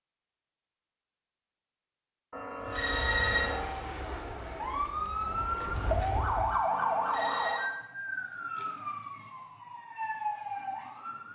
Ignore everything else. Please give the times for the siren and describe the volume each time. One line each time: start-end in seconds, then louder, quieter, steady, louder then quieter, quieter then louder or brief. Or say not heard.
2.9-11.3 louder then quieter.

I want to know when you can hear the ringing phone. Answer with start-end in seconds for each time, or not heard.
2.3-3.8, 6.7-7.7.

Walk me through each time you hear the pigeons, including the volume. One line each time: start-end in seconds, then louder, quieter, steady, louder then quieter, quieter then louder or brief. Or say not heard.
not heard.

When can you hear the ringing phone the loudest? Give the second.
3 s.